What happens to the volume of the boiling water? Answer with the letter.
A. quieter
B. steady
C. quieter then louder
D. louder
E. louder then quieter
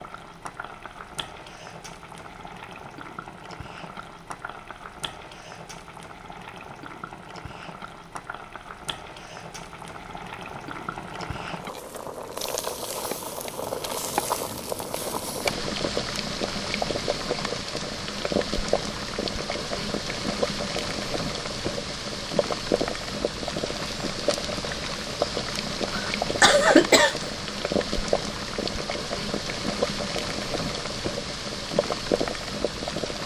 D.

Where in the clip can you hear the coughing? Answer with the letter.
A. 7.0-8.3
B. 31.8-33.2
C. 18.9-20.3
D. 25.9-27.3
D.